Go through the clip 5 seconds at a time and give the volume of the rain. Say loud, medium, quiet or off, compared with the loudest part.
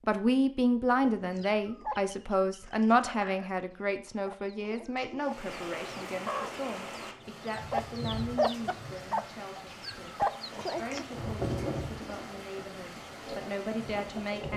off, loud, loud.